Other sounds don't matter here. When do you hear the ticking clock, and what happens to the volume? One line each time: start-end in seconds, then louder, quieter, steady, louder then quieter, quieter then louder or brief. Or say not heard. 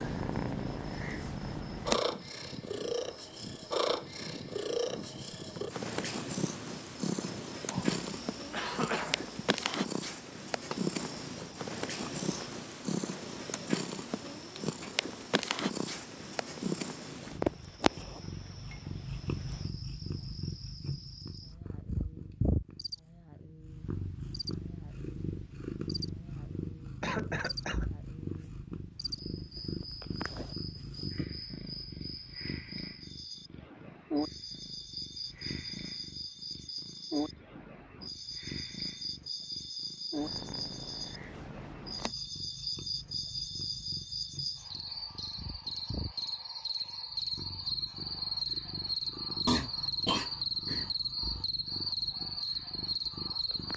not heard.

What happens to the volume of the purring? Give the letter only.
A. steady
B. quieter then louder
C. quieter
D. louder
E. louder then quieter
C.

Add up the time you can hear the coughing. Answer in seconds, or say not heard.
4 s.